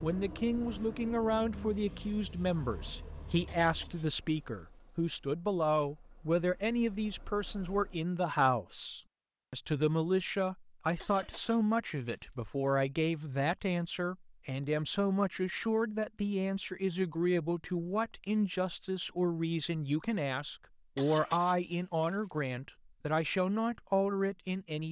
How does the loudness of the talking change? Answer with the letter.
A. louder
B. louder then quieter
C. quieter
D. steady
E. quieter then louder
D.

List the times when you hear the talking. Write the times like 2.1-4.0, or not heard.
0.0-24.8.